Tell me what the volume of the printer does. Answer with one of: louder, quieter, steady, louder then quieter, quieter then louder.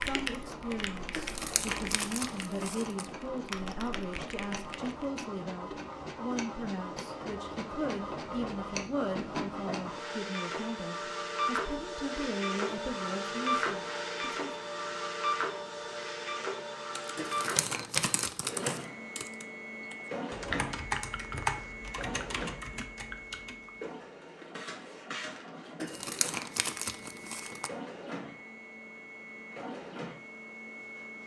louder then quieter.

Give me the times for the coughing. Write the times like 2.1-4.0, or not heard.
not heard.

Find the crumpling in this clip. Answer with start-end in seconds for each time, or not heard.
1.1-3.0, 17.1-18.9, 25.8-27.7.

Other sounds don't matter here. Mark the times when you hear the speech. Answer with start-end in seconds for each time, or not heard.
0.0-14.6.